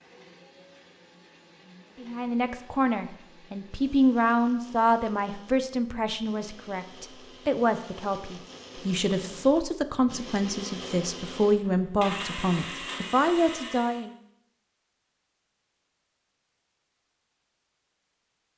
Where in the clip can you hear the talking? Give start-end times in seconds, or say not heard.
2.0-14.2.